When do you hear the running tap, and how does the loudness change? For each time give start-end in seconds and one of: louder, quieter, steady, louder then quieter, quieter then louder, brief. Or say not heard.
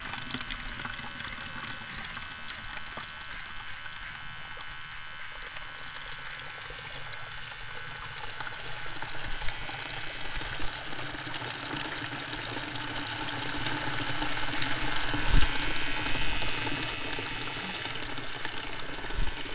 0.0-19.5 louder.